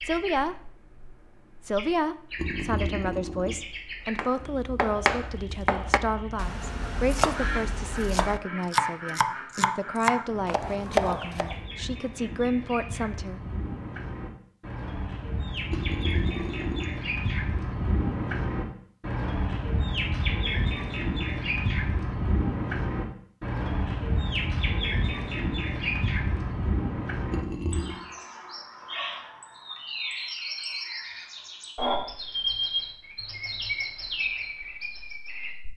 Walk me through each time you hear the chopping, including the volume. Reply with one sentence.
The chopping can be heard from 4.2 to 11.6 s, getting quieter then louder.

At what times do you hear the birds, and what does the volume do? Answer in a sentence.
The birds can be heard from 0.0 to 35.6 s, getting louder.